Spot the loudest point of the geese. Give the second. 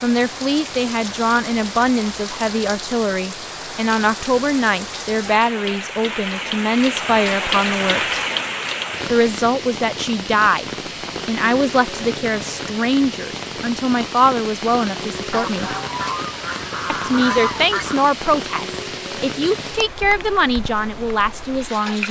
17 s.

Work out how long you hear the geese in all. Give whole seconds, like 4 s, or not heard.
3 s.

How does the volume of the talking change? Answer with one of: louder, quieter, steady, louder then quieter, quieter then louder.
steady.